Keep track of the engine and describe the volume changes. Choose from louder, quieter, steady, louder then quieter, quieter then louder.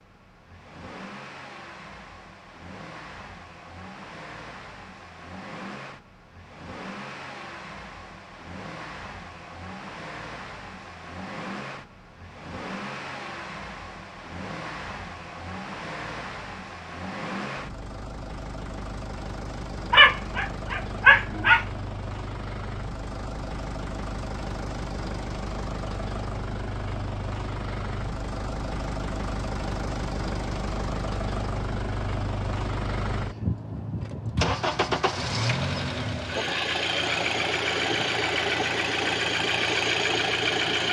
louder.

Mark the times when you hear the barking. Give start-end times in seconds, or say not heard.
19.9-21.6.